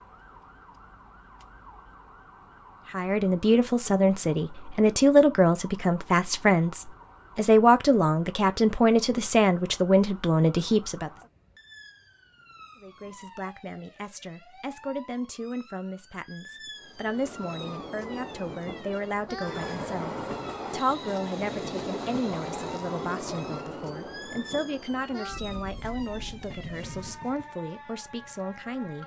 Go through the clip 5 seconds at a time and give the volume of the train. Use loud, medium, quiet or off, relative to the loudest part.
off, off, off, loud, loud, medium.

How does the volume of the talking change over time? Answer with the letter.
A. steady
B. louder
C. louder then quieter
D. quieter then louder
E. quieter
E.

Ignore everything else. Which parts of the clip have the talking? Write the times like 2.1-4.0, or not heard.
2.9-11.1, 12.8-29.0.